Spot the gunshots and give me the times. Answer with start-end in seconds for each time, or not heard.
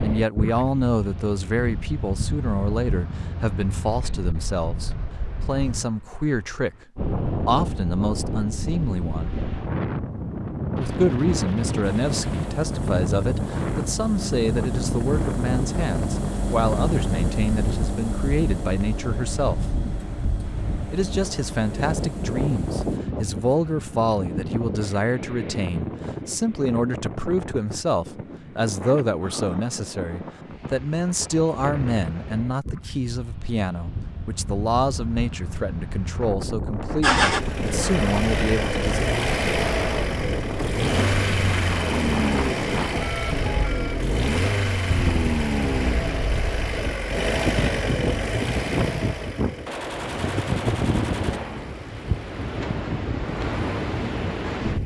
10.8-12.7, 49.6-51.6.